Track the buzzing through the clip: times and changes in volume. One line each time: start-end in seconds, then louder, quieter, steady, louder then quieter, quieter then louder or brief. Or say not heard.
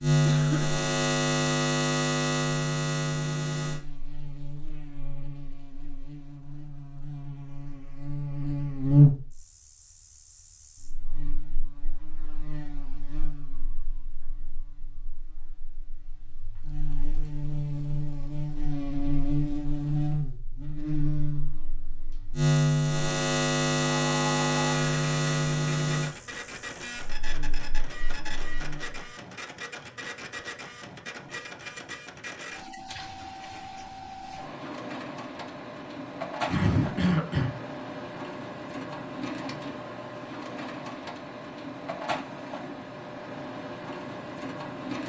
0.0-29.1 quieter then louder.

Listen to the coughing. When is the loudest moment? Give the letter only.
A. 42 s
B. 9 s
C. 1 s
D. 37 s
D.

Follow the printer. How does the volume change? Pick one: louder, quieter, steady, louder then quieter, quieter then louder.
steady.